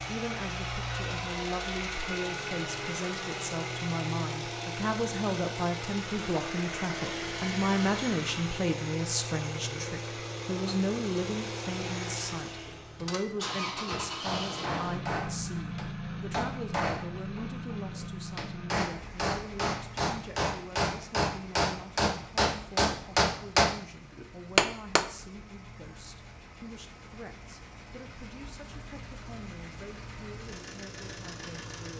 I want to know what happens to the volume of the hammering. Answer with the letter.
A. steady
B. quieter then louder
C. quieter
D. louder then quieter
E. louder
E.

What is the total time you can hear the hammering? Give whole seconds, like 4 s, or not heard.
11 s.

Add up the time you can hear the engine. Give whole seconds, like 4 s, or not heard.
32 s.